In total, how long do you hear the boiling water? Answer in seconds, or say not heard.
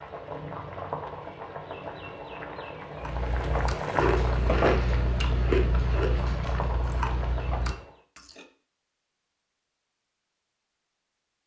8 s.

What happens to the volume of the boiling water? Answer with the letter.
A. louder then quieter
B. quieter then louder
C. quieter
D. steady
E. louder
A.